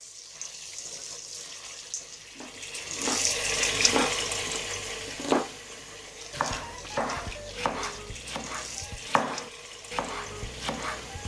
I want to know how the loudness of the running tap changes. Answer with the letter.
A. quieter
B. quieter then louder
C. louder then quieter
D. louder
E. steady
C.